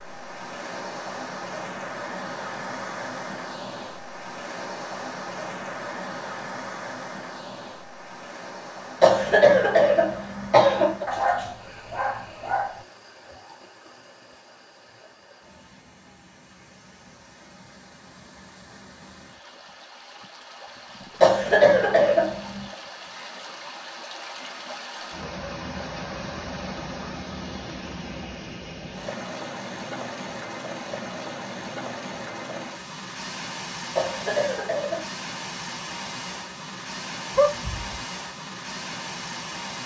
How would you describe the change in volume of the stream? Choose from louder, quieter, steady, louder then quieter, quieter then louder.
quieter then louder.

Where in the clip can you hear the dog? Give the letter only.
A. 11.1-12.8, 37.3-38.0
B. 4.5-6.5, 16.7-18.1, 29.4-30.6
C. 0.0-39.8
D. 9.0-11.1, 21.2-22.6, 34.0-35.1
A.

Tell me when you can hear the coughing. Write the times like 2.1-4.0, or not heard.
9.0-11.1, 21.2-22.6, 34.0-35.1.